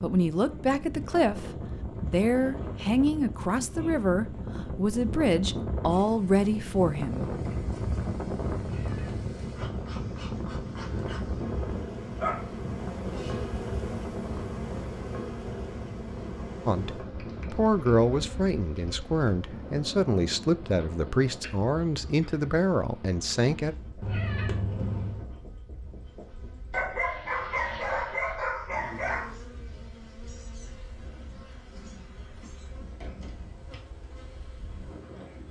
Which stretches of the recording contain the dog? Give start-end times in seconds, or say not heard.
12.1-13.6, 26.7-29.4.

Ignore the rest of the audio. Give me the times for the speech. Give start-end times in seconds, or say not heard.
0.0-7.3, 16.6-23.8.